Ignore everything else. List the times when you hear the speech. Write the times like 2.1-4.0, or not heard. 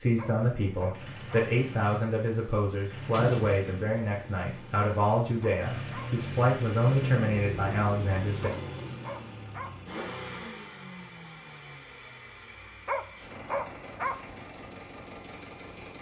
0.0-8.5.